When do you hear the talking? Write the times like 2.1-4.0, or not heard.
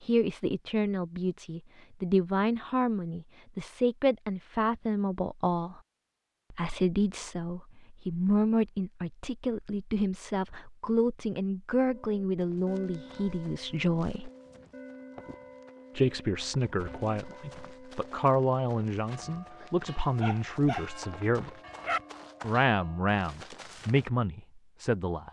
0.0-5.8, 6.5-14.3, 15.9-21.5, 22.4-25.2.